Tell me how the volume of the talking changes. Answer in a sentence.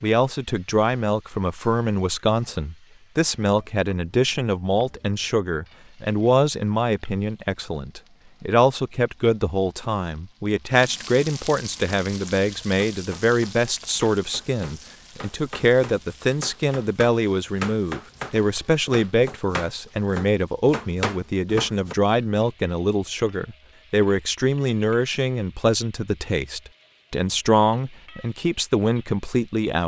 The volume of the talking stays about the same.